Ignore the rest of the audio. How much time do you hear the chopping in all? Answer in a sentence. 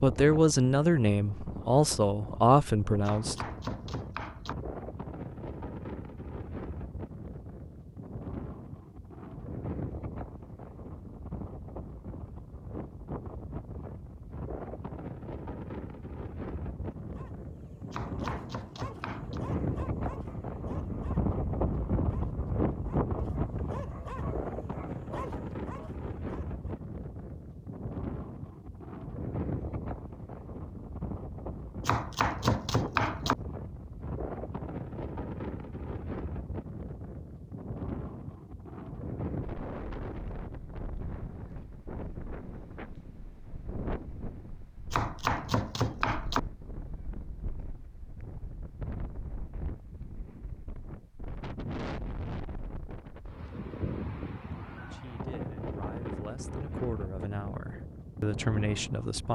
The chopping can be heard for 6 seconds in total.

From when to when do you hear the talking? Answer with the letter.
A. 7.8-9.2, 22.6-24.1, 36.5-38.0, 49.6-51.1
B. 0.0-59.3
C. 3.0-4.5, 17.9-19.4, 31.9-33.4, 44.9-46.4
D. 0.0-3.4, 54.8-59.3
D.